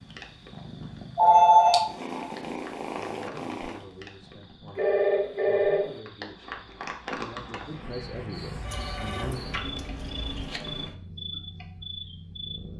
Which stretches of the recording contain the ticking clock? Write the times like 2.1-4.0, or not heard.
not heard.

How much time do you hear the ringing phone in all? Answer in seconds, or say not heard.
4 s.